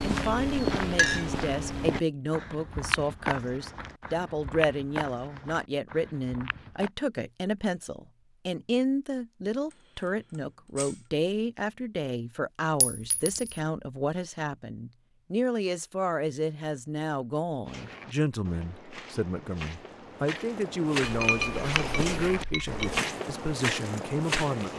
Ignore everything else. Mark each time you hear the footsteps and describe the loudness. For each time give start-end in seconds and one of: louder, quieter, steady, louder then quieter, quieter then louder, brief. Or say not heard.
0.0-6.9 quieter
17.6-24.7 louder.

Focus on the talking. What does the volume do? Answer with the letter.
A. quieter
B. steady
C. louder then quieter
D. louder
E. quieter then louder
B.